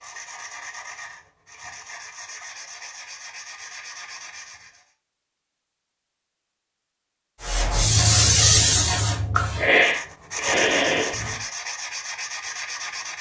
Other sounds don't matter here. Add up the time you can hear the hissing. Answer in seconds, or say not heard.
4 s.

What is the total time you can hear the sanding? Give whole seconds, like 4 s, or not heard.
8 s.